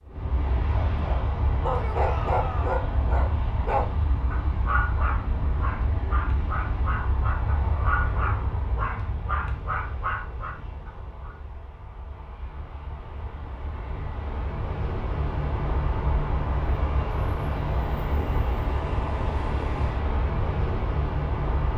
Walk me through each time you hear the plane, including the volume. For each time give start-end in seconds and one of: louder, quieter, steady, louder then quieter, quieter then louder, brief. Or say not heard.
0.1-21.7 quieter then louder.